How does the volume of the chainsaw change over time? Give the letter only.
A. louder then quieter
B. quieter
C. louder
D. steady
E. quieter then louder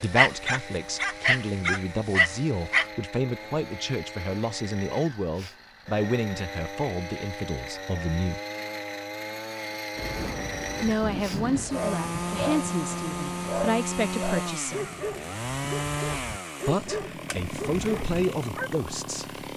C.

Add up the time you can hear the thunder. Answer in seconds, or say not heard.
4 s.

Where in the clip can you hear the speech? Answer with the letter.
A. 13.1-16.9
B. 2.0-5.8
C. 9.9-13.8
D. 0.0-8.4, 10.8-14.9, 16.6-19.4
D.